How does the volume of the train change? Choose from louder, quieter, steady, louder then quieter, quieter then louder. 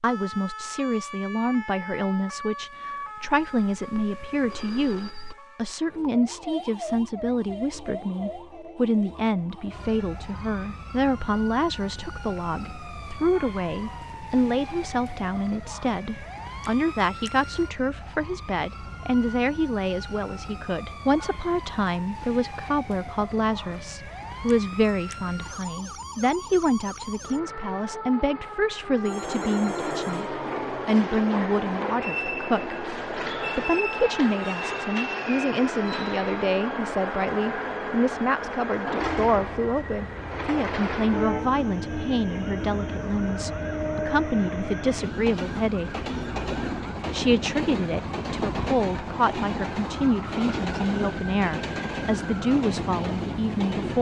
steady.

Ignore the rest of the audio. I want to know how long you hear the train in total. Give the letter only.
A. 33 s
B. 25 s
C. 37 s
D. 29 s
B.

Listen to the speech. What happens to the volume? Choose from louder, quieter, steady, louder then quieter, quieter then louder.
steady.